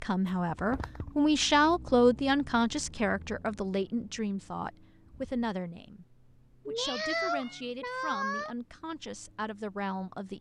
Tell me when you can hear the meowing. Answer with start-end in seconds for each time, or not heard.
0.5-1.1, 6.7-8.6.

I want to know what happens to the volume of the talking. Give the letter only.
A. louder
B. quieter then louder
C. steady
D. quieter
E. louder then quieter
D.